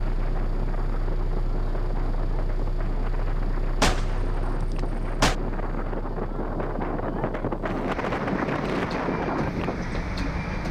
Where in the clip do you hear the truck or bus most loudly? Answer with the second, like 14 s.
10 s.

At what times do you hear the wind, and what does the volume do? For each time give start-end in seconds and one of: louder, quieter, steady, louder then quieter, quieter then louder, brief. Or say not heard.
0.0-10.6 louder.